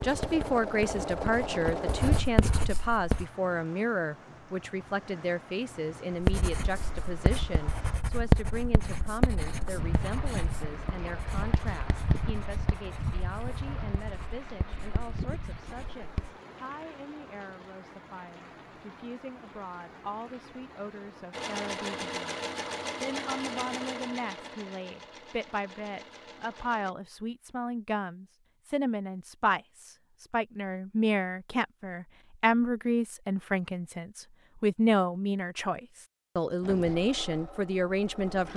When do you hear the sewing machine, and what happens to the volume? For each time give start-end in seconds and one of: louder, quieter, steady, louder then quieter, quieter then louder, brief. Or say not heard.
0.0-2.2 brief
21.3-26.9 quieter
36.6-38.5 brief.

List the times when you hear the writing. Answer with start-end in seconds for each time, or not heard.
0.0-3.2, 6.2-16.4.